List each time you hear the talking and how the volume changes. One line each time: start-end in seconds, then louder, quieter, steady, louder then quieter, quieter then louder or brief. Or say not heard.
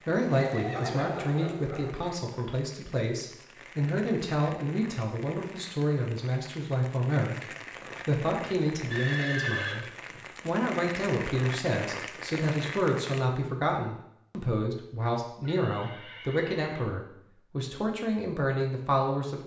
0.1-19.4 steady.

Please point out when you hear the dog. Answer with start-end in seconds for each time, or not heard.
0.0-2.1.